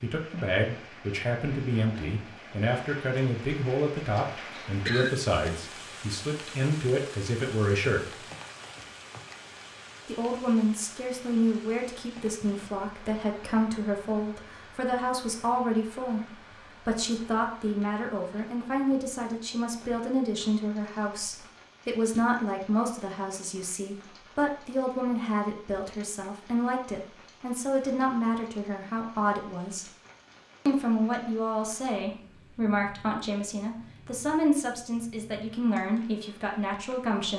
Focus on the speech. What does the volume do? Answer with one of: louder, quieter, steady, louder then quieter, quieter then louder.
steady.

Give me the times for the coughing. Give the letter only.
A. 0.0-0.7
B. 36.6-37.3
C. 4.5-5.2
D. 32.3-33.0
C.